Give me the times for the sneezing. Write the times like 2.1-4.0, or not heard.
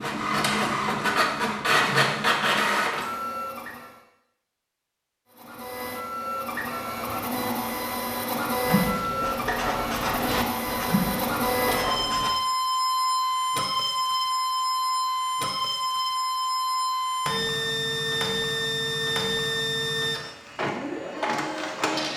not heard.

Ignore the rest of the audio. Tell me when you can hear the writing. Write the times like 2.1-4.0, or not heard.
8.7-12.3.